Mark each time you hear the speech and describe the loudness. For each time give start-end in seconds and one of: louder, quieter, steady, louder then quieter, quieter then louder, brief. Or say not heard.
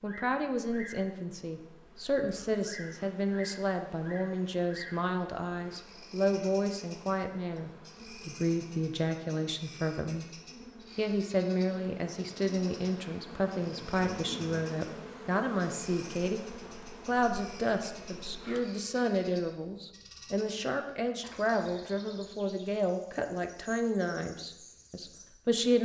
0.0-10.2 steady
10.9-16.4 steady
17.1-25.7 steady.